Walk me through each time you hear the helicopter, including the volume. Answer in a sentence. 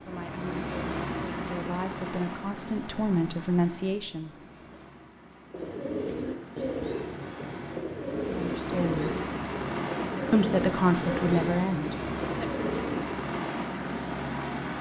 You can hear the helicopter from 0.0 to 14.7 s, getting quieter then louder.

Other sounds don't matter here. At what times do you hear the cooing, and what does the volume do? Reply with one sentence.
You can hear the cooing from 5.5 to 13.1 s, at a steady volume.